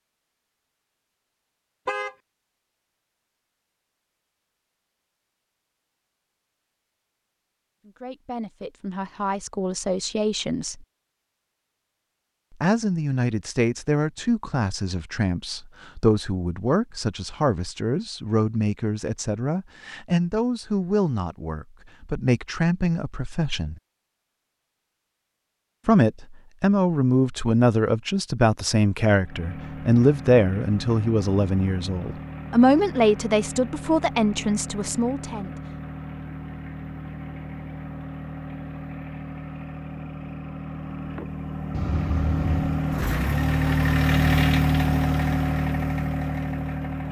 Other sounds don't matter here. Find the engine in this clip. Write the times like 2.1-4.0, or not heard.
29.2-47.0.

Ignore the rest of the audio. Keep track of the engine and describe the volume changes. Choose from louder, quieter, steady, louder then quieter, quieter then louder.
louder.